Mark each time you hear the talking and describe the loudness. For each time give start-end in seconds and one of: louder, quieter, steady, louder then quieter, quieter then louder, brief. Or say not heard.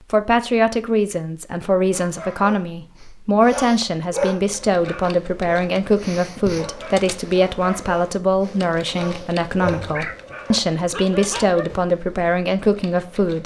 0.0-13.4 steady.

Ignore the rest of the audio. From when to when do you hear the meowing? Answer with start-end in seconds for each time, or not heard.
9.6-10.2.